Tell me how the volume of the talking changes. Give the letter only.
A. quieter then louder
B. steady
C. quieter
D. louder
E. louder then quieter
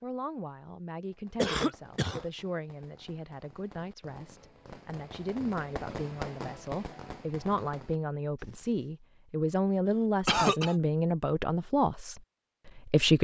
D.